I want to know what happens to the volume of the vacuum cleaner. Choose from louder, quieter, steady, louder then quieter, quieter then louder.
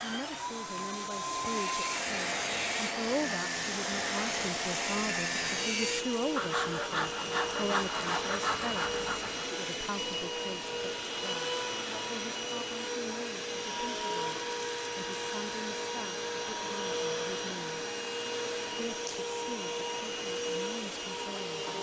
steady.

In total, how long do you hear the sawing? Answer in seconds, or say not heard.
8 s.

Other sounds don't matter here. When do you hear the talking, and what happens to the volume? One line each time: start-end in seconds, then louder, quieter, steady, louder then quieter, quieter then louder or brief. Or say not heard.
0.0-17.9 quieter
18.8-21.7 brief.